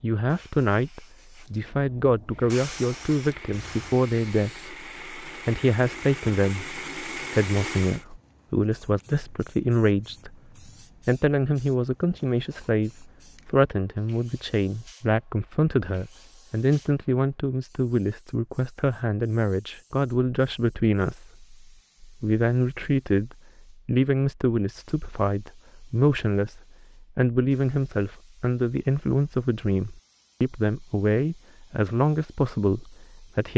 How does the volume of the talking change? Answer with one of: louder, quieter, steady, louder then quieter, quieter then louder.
steady.